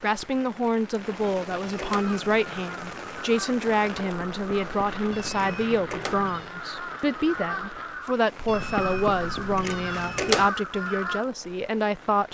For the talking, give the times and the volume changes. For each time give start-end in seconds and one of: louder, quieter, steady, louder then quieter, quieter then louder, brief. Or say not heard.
0.0-12.2 steady.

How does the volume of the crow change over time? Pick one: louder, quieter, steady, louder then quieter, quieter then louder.
louder.